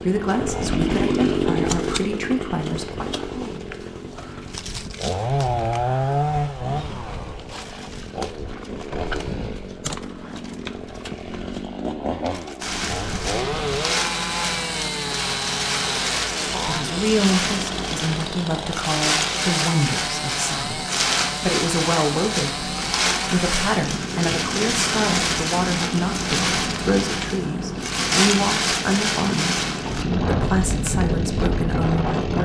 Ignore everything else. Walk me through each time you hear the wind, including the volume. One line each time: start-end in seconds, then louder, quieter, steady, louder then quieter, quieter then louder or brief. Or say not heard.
12.6-32.4 steady.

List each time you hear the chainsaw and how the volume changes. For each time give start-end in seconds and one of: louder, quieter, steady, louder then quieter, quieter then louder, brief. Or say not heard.
0.0-32.4 quieter.